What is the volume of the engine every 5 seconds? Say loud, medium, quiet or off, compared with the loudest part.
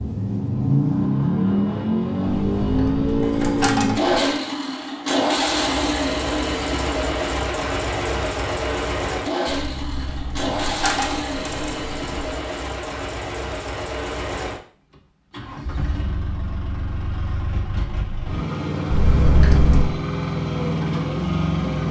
loud, loud, medium, medium, loud.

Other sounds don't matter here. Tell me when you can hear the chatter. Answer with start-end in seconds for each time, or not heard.
not heard.